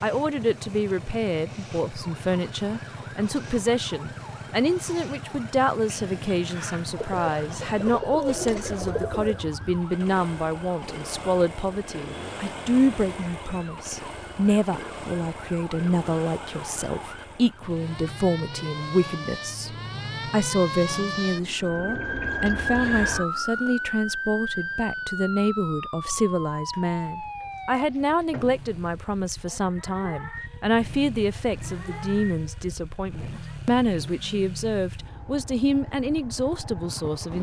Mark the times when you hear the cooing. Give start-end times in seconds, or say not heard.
7.0-9.4.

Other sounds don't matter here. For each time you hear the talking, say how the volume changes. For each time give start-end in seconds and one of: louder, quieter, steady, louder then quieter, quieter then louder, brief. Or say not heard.
0.0-37.3 steady.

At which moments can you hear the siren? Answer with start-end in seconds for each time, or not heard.
1.9-33.6.